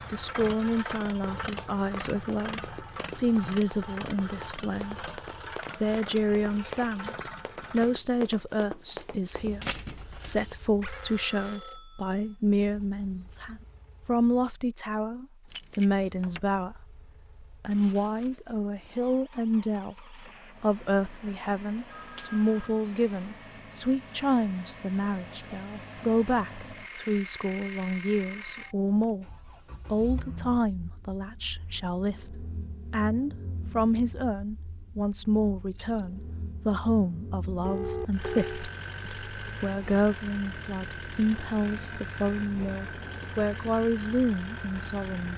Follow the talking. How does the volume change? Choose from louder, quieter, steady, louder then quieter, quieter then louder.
steady.